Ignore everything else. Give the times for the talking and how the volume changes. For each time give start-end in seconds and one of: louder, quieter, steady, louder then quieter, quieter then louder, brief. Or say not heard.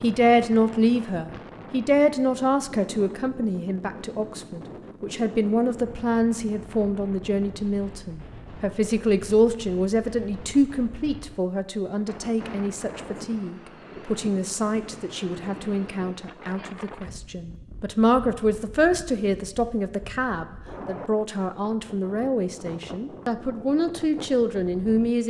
0.0-25.2 steady.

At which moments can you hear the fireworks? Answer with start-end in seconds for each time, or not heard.
not heard.